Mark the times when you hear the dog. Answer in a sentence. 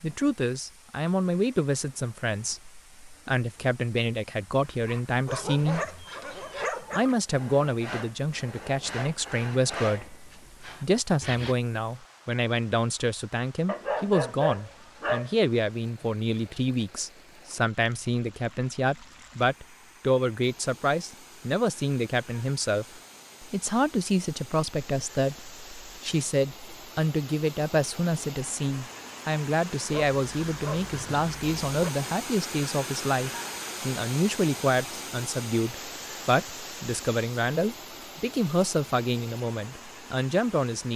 The dog can be heard from 5.2 to 7.1 s, from 13.7 to 15.3 s and from 29.9 to 31.9 s.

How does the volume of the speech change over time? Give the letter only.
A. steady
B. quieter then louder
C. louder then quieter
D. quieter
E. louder
A.